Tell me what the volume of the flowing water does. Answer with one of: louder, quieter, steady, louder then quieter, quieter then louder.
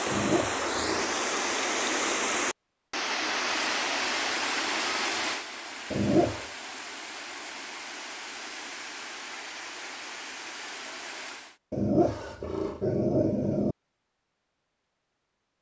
quieter.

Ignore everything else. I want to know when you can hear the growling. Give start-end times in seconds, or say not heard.
0.1-1.2, 5.9-6.5, 11.7-13.8.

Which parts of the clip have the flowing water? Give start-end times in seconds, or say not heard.
0.0-11.6.